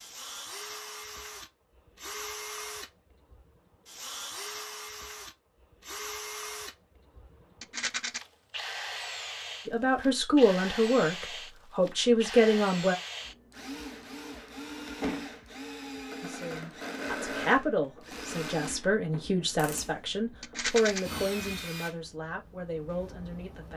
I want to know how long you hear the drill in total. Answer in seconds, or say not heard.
24 s.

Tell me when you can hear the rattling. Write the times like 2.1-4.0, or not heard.
7.6-8.2, 20.4-21.0.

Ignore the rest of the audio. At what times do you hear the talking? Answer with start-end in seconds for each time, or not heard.
9.7-12.9, 16.2-23.7.